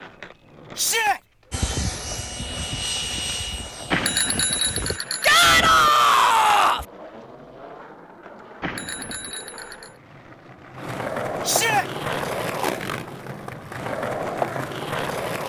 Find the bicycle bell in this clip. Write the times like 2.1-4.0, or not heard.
3.9-5.9, 8.6-9.9.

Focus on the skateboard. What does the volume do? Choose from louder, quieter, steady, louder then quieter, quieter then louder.
louder.